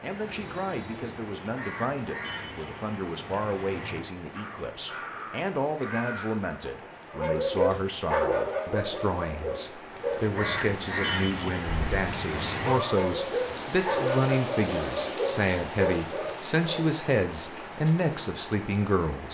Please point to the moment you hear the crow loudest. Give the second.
11 s.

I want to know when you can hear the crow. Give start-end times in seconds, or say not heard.
0.0-6.5, 10.0-13.0.